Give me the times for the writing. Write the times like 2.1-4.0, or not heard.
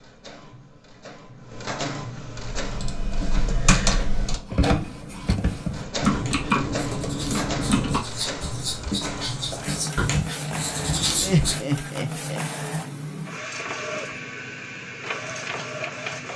4.7-11.6.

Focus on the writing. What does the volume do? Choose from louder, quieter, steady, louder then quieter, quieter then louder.
louder.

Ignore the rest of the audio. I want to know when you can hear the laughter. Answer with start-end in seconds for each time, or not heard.
11.2-12.4.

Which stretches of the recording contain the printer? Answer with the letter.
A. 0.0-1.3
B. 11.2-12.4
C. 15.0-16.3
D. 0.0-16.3
D.